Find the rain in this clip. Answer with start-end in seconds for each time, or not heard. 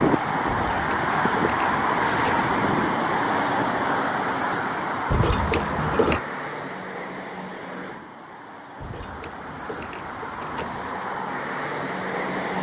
not heard.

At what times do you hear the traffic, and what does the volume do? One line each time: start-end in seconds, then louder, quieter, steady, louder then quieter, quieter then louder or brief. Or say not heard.
0.0-12.5 quieter then louder.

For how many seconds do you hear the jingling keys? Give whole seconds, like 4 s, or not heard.
5 s.